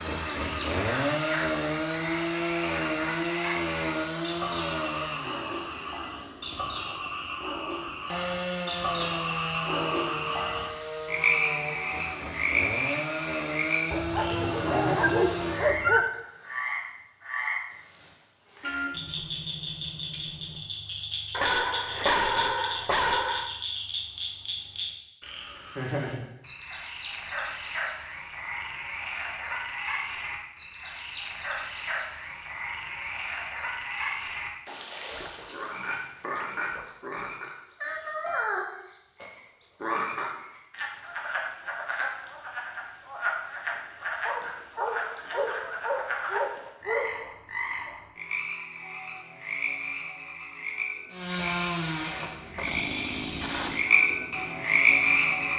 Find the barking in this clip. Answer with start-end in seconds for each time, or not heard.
13.9-16.1, 21.3-23.5, 44.2-47.1.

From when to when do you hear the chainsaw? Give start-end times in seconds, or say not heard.
0.0-15.8, 51.1-55.5.